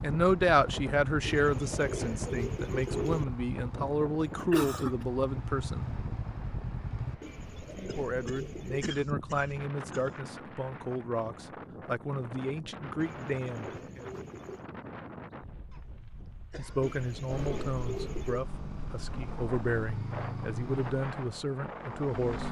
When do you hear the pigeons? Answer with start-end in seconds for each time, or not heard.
1.2-3.2, 7.2-8.9, 13.0-14.7, 16.8-18.4.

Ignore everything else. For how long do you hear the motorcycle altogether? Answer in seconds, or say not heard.
12 s.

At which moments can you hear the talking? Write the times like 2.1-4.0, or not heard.
0.0-5.9, 7.8-14.1, 16.6-22.4.